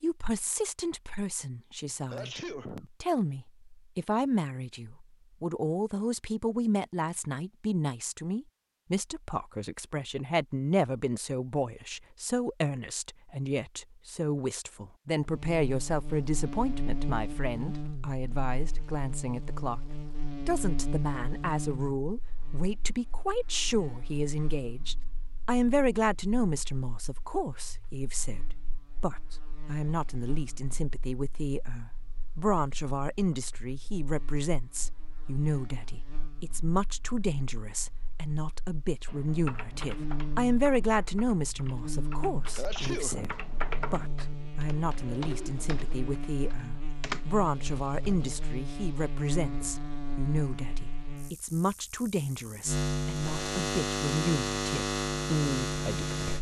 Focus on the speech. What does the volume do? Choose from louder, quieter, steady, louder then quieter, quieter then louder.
steady.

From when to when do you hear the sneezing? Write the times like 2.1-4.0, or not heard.
2.1-2.9, 42.5-43.4.